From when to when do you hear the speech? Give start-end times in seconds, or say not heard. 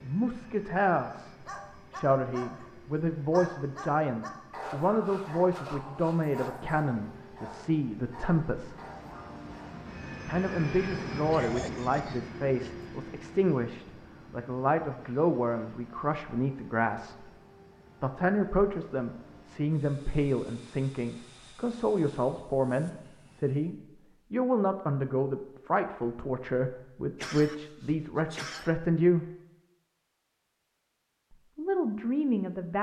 0.0-8.8, 10.2-17.3, 18.0-29.2, 31.3-32.7.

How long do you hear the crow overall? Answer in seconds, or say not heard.
not heard.